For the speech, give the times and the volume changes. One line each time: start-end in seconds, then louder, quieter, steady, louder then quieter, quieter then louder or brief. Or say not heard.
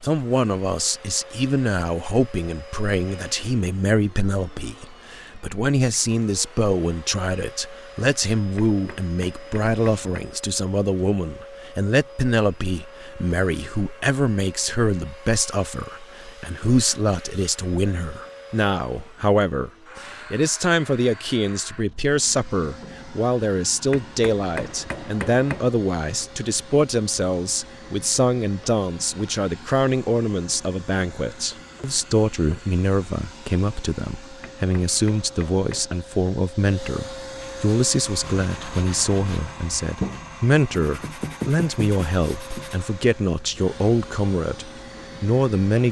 0.0-45.8 steady.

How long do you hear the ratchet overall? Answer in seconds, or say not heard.
not heard.